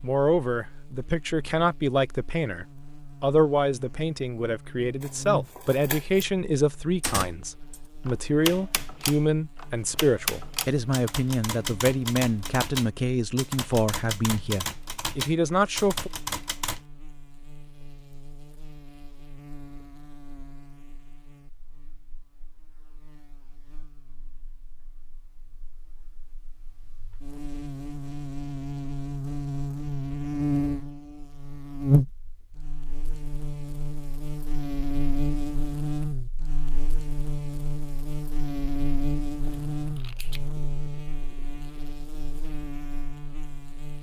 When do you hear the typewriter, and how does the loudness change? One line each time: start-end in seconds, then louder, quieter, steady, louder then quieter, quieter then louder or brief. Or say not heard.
7.0-16.8 steady.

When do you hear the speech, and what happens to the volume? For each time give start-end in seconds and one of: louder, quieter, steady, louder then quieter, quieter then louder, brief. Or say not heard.
0.0-16.1 steady.